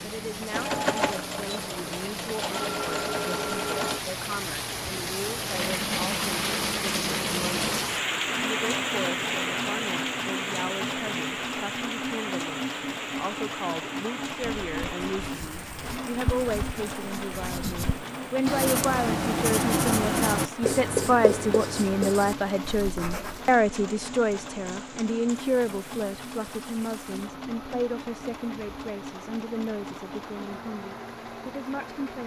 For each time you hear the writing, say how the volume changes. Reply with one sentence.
The writing can be heard from 14.3 to 23.5 s, getting louder then quieter.